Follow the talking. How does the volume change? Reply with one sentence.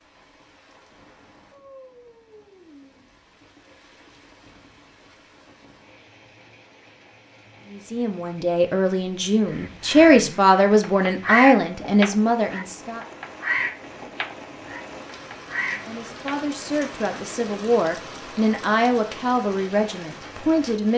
The loudness of the talking goes up, then down.